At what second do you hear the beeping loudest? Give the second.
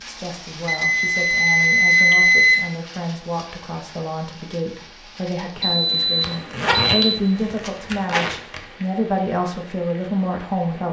2 s.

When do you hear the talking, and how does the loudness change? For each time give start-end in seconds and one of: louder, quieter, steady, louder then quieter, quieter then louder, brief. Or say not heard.
0.0-10.8 louder.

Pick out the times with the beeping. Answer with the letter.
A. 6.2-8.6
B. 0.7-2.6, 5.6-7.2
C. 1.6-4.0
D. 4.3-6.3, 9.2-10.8
B.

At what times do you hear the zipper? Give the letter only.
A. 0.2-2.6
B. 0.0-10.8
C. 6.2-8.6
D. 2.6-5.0
C.